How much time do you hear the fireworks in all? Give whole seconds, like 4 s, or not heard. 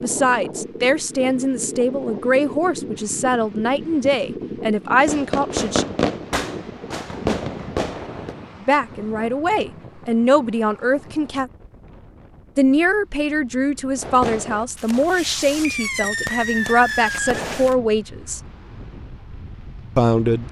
7 s.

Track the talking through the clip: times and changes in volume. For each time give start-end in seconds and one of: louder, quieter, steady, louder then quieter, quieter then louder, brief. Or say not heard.
0.0-5.8 steady
8.6-11.5 brief
12.6-18.4 steady
19.9-20.4 brief.